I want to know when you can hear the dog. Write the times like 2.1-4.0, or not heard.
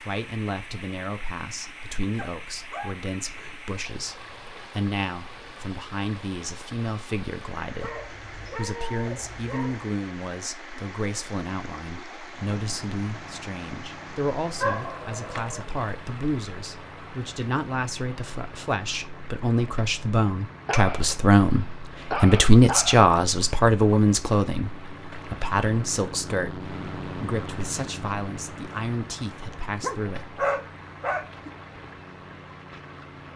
2.1-3.8, 7.8-9.8, 14.6-15.7, 20.6-23.1, 29.8-31.5.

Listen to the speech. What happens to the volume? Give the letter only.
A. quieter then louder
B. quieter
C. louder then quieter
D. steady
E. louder
C.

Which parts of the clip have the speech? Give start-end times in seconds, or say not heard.
0.0-30.4.